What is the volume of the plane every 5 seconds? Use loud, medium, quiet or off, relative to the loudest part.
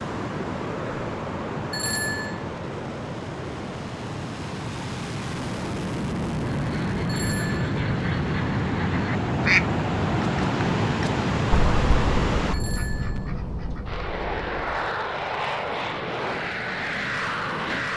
medium, loud, loud, loud.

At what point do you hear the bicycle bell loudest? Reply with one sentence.
The loudest moment of the bicycle bell is at 2 seconds.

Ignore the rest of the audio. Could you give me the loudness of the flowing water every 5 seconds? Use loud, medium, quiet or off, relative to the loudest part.
medium, medium, loud, off.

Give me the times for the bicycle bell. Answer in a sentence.
You can hear the bicycle bell from 1.7 to 2.5 s, from 7.0 to 7.7 s and from 12.5 to 13.3 s.